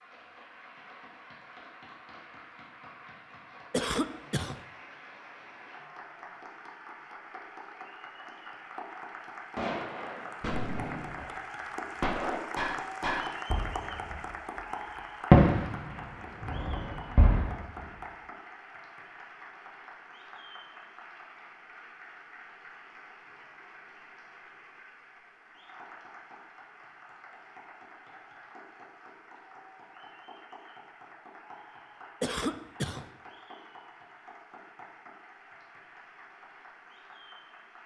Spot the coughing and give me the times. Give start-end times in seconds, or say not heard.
3.7-4.6, 32.2-33.0.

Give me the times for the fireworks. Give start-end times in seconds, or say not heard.
9.6-14.6, 15.3-17.8.